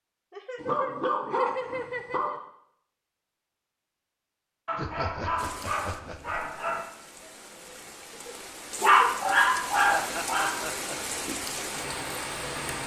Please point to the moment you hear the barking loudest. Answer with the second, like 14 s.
9 s.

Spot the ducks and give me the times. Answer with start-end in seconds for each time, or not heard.
not heard.